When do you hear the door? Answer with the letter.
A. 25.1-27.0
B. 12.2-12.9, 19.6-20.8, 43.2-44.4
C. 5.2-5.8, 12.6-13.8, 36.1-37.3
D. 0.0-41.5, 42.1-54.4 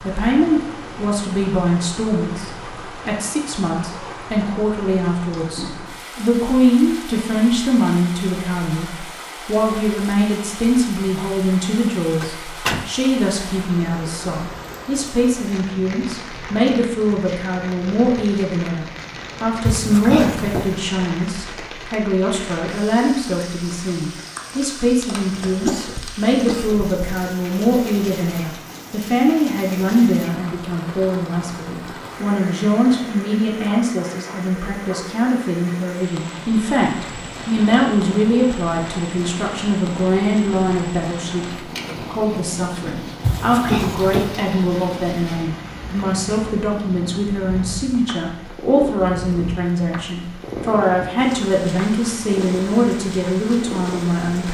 B.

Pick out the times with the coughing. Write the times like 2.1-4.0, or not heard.
25.1-27.0.